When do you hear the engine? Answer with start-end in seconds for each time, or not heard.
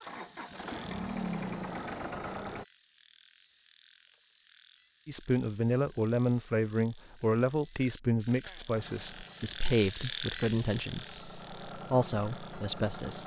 0.0-2.6, 8.7-13.2.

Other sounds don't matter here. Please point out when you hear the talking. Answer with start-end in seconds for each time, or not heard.
5.0-13.2.